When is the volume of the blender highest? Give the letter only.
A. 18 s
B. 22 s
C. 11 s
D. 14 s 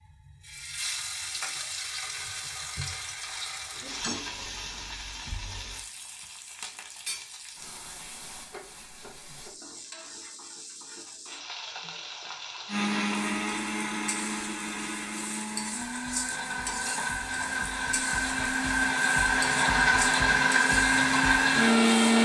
B.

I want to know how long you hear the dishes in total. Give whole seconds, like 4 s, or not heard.
not heard.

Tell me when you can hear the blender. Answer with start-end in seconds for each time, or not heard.
12.7-22.2.